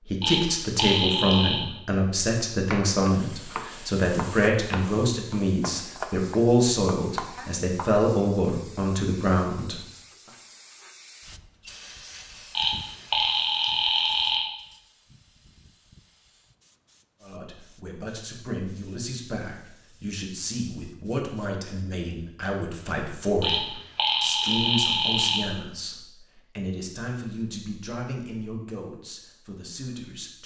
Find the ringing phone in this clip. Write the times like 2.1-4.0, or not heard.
0.2-1.6, 12.6-14.4, 23.4-25.4.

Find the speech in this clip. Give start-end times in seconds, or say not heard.
0.0-9.8, 17.2-30.4.